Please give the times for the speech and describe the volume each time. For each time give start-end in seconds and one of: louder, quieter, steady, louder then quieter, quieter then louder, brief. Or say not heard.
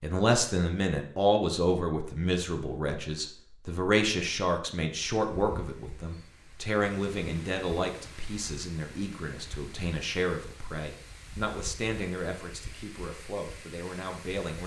0.0-14.6 quieter.